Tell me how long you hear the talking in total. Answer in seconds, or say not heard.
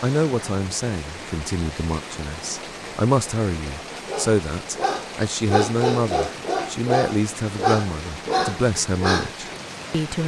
10 s.